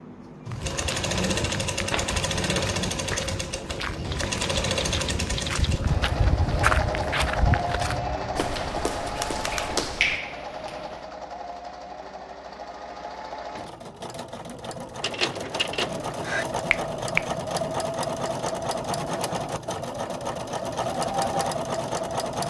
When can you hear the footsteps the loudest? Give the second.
7 s.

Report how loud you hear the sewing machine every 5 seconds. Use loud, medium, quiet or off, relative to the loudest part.
loud, loud, medium, loud, loud.